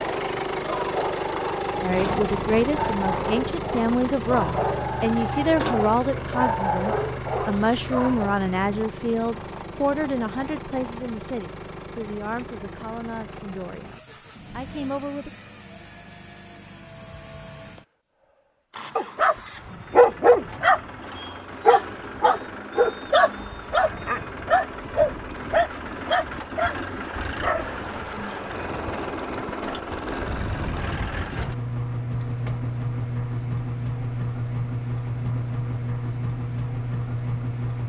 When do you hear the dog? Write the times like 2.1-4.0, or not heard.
0.0-8.3, 18.9-27.8.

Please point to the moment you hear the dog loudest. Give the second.
20 s.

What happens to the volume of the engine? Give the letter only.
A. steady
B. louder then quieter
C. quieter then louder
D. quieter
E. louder
C.